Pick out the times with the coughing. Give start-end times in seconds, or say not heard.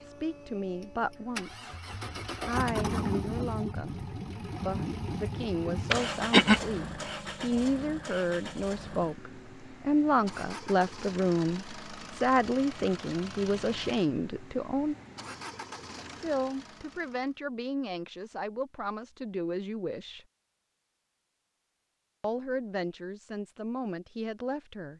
5.9-6.6.